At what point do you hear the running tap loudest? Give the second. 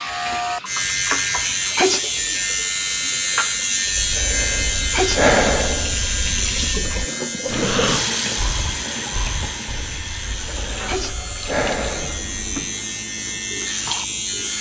8 s.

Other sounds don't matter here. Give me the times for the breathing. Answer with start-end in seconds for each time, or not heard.
3.9-12.4.